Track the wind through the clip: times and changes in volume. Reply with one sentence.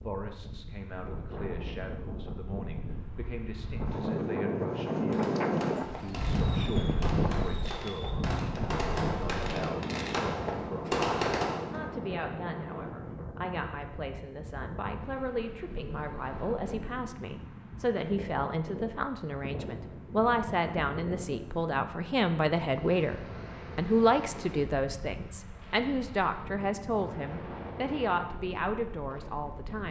The wind can be heard from 0.0 to 29.8 s, getting quieter.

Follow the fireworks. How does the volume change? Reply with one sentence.
The loudness of the fireworks goes up.